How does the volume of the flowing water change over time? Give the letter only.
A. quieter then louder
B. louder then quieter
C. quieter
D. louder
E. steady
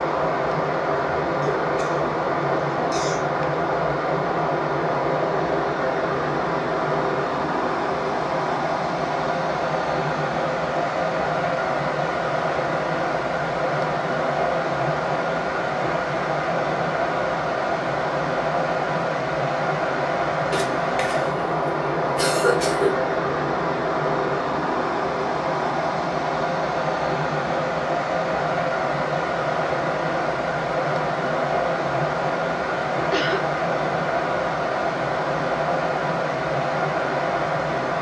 E.